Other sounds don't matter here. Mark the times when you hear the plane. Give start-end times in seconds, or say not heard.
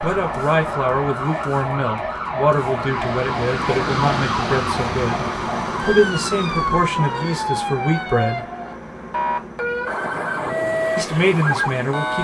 0.0-12.1.